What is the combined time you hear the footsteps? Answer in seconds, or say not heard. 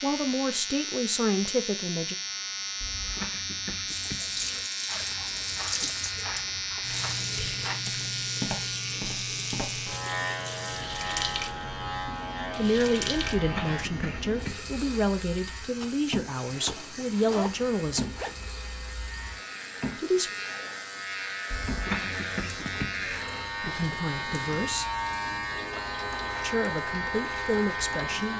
5 s.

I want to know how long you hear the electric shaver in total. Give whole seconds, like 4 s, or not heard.
28 s.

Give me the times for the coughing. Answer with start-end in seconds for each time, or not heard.
2.8-4.7, 13.3-14.8, 21.5-23.6.